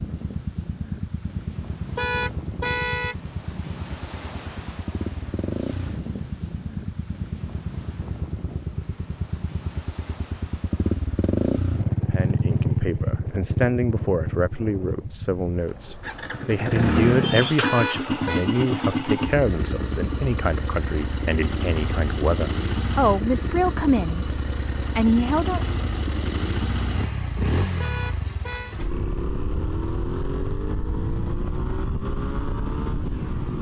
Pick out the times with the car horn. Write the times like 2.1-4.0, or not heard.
1.9-3.1, 17.6-18.5, 27.8-28.8.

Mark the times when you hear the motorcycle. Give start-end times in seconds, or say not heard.
0.0-33.5.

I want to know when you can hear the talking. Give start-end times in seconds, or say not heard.
12.1-25.8.